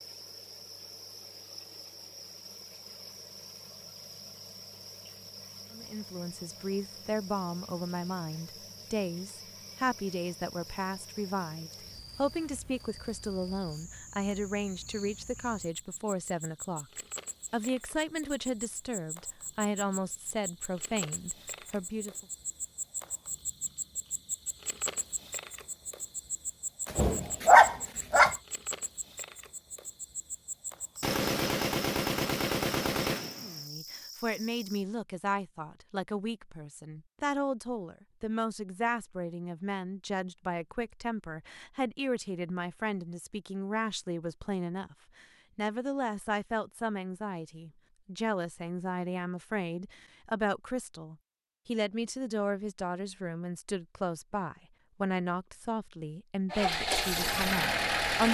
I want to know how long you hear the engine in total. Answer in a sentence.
You can hear the engine for 2 seconds altogether.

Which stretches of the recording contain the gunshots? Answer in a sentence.
You can hear the gunshots from 31.0 to 33.6 s.